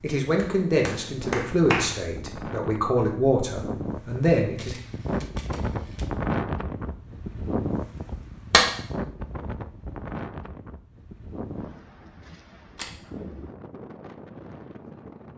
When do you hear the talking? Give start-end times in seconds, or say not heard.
0.0-4.8.